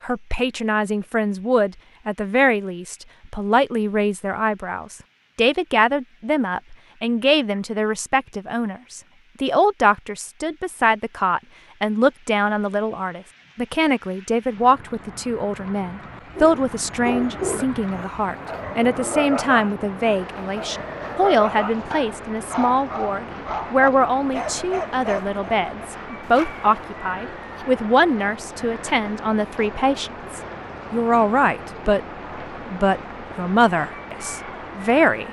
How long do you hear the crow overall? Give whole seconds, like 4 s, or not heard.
not heard.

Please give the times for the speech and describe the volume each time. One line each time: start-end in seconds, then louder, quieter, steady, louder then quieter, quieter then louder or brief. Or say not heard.
0.0-32.0 steady
32.6-35.2 brief.